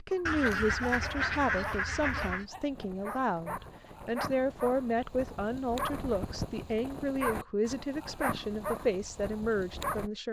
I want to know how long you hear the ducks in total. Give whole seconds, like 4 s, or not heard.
2 s.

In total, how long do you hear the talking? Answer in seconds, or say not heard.
10 s.